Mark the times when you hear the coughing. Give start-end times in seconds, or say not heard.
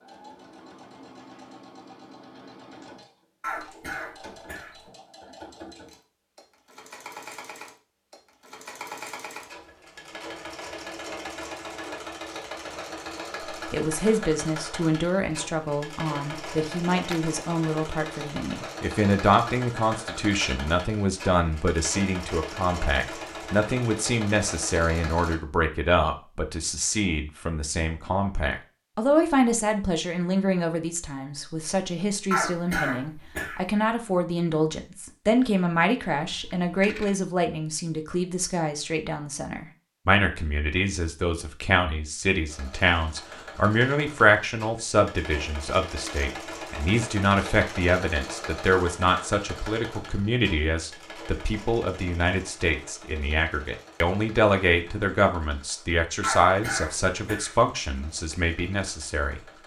3.4-4.8, 32.3-33.6, 56.2-57.6.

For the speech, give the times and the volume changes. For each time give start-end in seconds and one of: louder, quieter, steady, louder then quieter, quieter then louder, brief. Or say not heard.
13.5-59.4 steady.